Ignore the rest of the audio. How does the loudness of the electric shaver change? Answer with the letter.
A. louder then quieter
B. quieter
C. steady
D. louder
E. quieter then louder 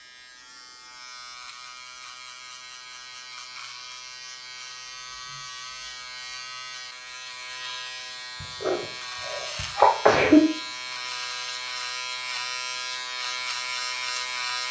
D.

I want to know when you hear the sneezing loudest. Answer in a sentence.
The loudest moment of the sneezing is at 10 seconds.